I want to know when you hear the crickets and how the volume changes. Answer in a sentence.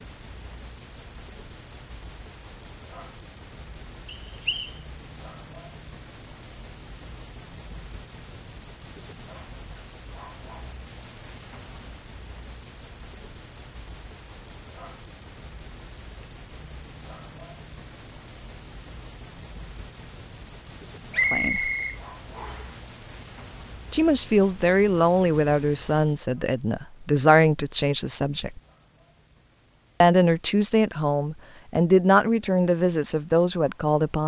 The crickets can be heard from 0.0 to 34.2 s, getting quieter.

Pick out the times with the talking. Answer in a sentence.
You can hear the talking from 21.2 to 21.7 s, from 23.9 to 28.6 s and from 30.0 to 34.2 s.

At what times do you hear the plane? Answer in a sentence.
The plane can't be heard in this clip.